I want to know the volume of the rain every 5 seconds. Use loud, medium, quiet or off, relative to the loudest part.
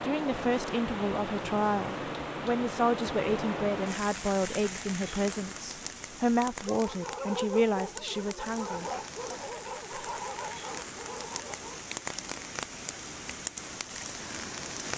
loud, medium, loud.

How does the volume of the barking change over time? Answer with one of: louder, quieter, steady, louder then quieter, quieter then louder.
quieter.